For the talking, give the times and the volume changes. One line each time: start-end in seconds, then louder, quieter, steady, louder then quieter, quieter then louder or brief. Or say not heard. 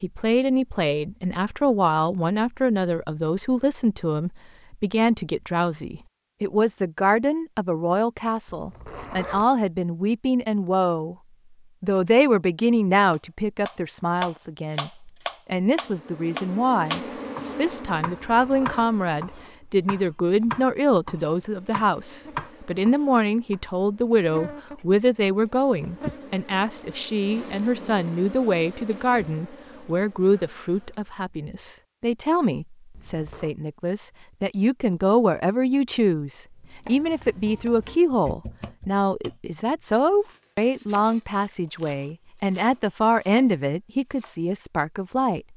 0.0-11.2 steady
11.8-45.5 steady.